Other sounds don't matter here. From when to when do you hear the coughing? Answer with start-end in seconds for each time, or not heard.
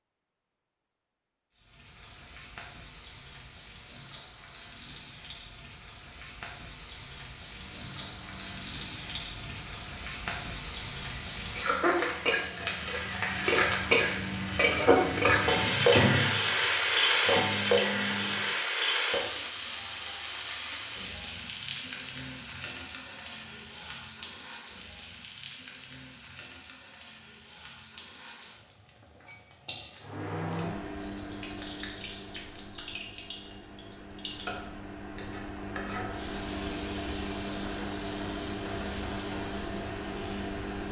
not heard.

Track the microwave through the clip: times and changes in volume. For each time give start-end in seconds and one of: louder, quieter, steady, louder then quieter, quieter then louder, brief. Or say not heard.
7.5-18.5 louder
30.0-40.8 quieter then louder.